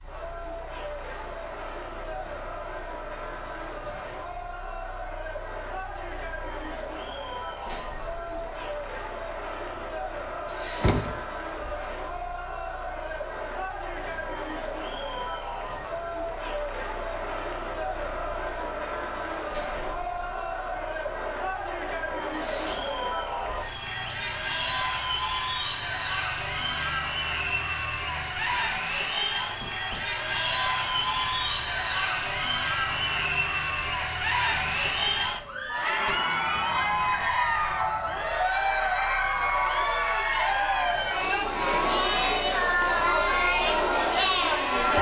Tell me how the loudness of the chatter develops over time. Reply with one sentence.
The volume of the chatter goes up.